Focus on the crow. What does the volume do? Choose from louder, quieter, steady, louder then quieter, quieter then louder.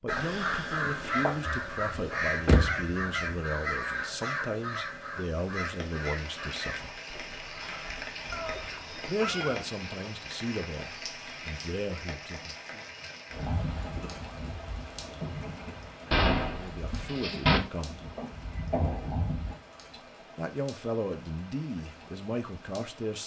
quieter.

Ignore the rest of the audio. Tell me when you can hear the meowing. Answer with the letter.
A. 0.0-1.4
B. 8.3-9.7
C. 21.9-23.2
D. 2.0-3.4
B.